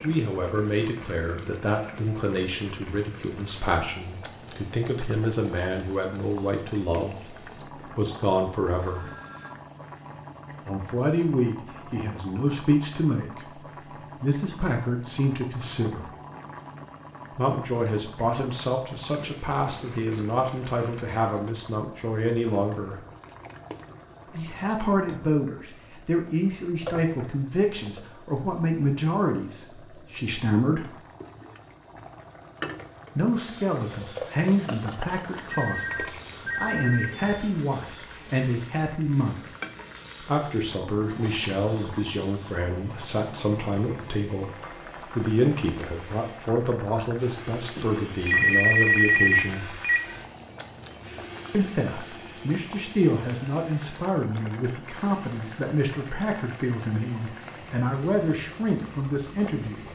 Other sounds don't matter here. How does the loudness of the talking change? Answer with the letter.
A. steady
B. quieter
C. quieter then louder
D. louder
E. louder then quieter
A.